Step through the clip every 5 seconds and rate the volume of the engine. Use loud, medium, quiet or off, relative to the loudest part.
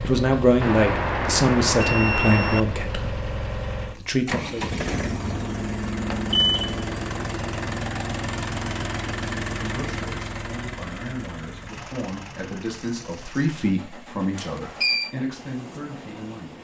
loud, loud, medium, quiet.